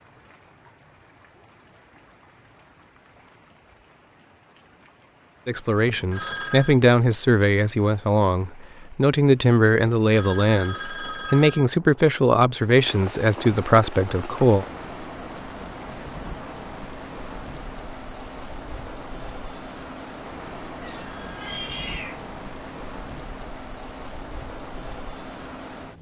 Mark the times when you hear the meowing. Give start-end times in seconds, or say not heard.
20.8-22.2.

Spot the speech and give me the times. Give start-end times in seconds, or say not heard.
5.5-14.7.